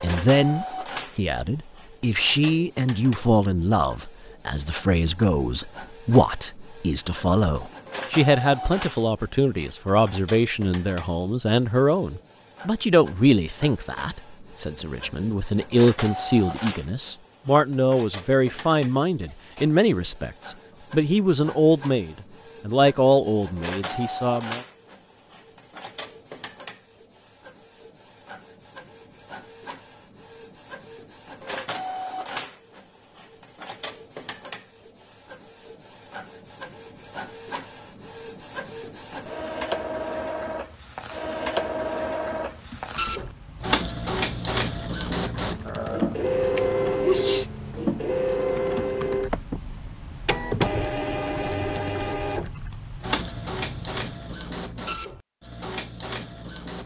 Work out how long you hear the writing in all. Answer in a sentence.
The writing can't be heard in this clip.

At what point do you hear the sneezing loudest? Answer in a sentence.
The volume of the sneezing peaks at 47 seconds.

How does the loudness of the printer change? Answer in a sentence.
The volume of the printer goes up.